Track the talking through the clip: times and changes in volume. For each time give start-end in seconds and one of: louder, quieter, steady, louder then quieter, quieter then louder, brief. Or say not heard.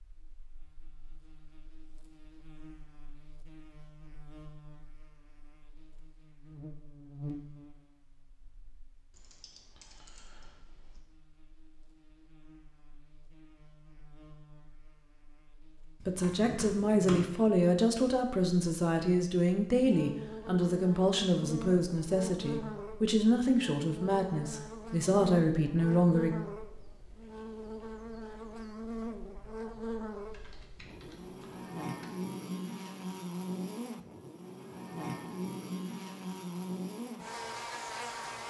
16.1-26.4 steady.